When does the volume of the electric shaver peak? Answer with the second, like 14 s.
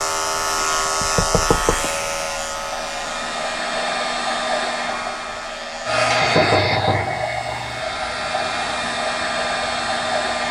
1 s.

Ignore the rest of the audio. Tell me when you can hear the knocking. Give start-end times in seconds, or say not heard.
1.0-1.9, 6.2-7.2.